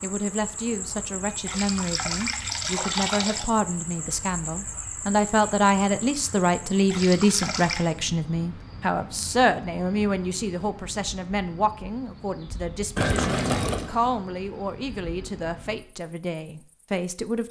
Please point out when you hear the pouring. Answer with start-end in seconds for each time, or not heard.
1.4-3.5, 6.9-7.8, 12.9-13.9.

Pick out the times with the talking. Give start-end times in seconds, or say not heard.
0.0-17.4.